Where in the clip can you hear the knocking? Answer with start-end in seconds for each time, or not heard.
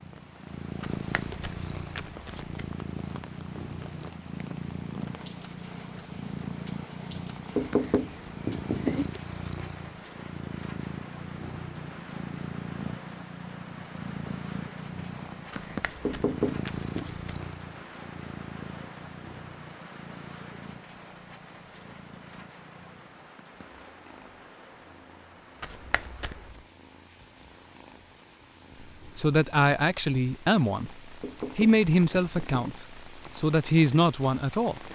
7.5-9.1, 16.1-17.1, 31.2-32.8.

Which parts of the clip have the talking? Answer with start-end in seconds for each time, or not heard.
29.1-34.9.